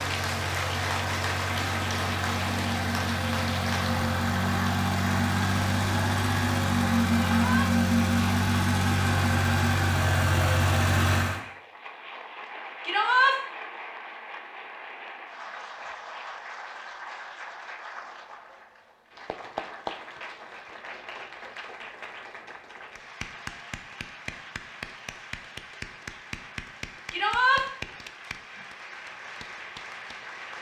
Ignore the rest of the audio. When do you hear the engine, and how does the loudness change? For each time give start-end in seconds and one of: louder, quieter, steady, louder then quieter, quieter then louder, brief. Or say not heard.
0.0-11.4 louder.